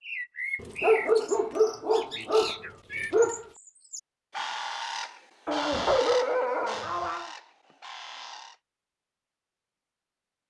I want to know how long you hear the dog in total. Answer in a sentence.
The dog can be heard for 5 seconds in total.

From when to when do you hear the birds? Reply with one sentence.
The birds can be heard from 0.0 to 8.6 s.